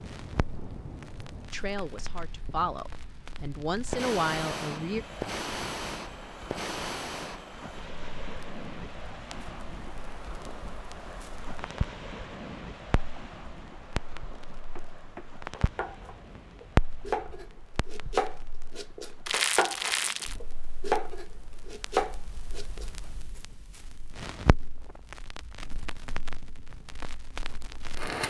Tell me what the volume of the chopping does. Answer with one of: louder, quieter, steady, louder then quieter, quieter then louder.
louder.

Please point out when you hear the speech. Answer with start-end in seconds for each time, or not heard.
1.5-5.0.